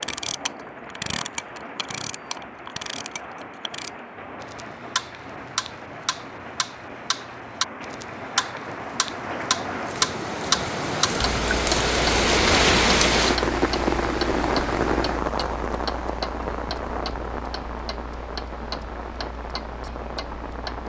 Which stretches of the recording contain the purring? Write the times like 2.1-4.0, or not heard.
not heard.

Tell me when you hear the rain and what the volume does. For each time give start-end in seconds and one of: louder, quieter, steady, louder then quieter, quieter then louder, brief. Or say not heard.
0.0-20.8 louder then quieter.